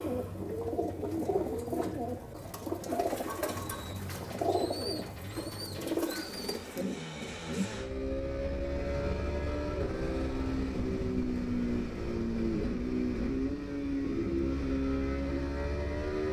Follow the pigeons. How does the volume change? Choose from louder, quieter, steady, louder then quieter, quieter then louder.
steady.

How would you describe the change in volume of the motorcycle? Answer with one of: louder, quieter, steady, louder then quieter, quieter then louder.
louder.